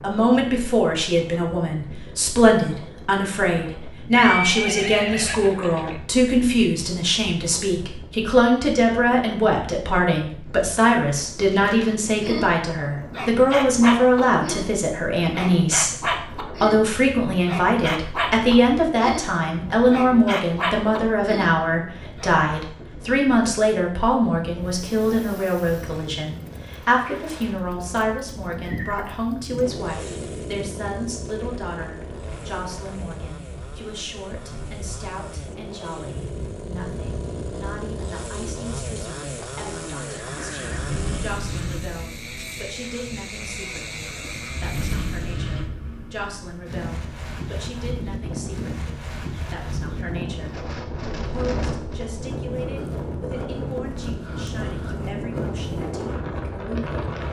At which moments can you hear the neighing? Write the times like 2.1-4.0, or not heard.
4.1-6.0, 28.6-29.6, 39.4-41.0.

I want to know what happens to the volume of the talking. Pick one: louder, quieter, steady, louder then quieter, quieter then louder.
quieter.